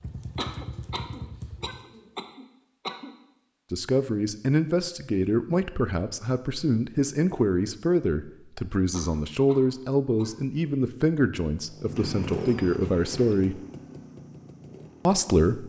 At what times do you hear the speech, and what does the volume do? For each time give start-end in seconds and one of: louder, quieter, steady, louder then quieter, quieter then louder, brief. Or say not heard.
3.7-13.6 steady
15.1-15.6 brief.